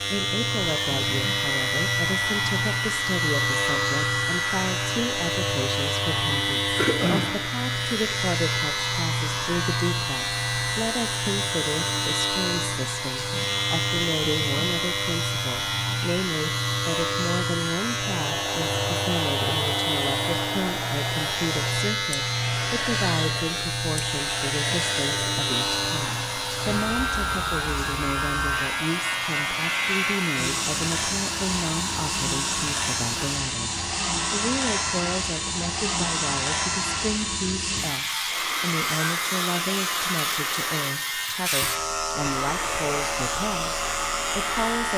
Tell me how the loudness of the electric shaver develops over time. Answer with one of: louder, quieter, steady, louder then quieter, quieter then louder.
steady.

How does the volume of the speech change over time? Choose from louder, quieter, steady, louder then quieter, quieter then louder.
steady.